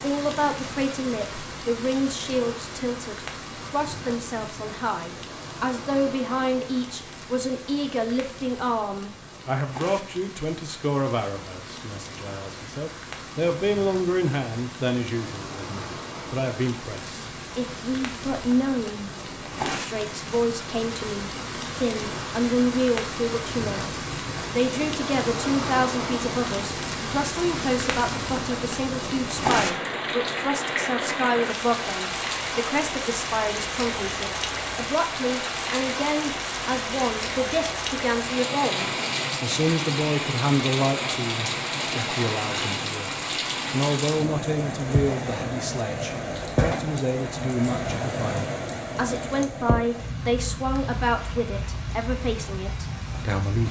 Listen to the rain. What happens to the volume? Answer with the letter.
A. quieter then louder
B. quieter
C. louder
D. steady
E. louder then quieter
C.